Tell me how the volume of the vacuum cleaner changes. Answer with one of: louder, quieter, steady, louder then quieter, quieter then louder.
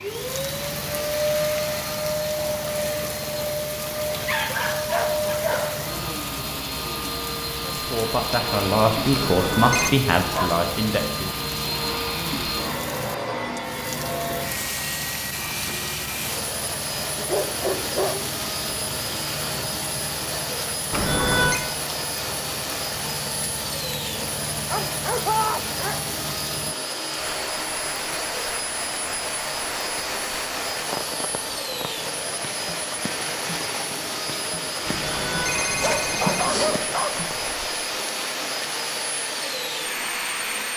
steady.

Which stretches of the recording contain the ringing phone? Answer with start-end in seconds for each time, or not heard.
9.1-9.9, 20.9-21.6, 34.9-36.8.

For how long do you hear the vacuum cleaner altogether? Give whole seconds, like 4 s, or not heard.
41 s.